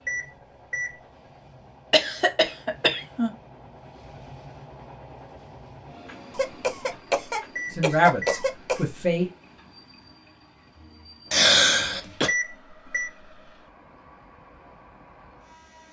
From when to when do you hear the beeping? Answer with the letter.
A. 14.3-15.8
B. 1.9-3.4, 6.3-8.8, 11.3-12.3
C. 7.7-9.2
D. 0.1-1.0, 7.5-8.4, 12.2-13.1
D.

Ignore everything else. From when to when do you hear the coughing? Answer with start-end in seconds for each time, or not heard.
1.9-3.4, 6.3-8.8, 11.3-12.3.